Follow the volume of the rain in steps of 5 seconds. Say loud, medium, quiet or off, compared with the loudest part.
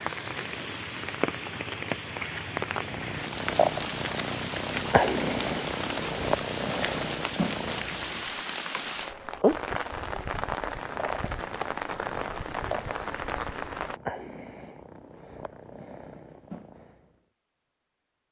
loud, loud, loud, off.